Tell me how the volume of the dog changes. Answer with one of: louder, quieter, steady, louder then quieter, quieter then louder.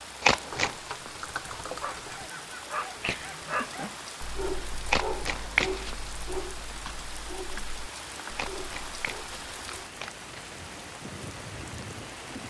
quieter.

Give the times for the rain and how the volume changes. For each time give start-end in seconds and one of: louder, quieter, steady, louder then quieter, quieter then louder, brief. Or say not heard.
0.0-12.4 steady.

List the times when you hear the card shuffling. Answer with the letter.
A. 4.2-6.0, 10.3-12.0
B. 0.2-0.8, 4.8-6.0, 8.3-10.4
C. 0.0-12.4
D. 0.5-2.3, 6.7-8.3
B.